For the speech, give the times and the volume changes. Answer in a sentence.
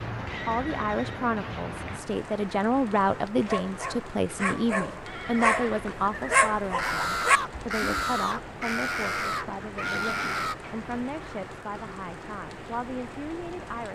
You can hear the speech from 0.5 to 13.9 s, getting quieter.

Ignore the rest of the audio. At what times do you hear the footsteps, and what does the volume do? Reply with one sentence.
The footsteps can't be heard in this clip.